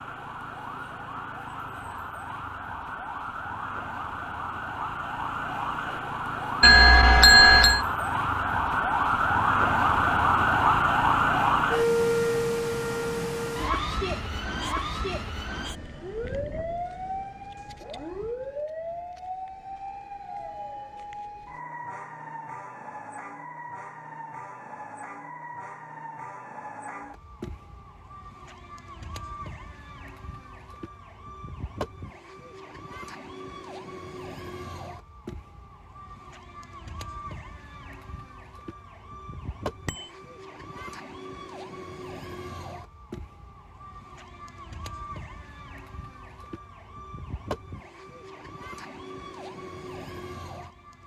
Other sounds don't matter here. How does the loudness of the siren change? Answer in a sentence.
The volume of the siren goes down.